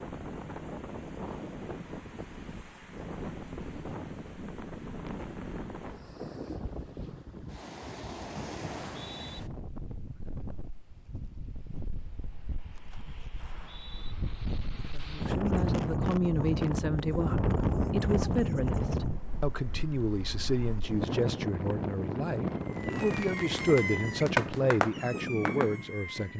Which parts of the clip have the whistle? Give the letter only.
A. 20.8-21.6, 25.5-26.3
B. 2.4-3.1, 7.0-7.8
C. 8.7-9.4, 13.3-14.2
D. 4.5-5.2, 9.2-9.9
C.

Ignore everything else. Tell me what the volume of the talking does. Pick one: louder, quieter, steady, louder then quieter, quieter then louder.
steady.